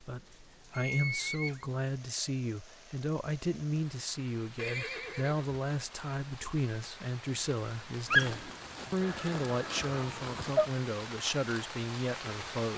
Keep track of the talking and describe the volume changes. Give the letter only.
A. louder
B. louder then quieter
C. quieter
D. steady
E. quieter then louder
D.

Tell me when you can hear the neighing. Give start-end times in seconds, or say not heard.
0.7-1.6, 4.5-6.0, 9.0-10.7.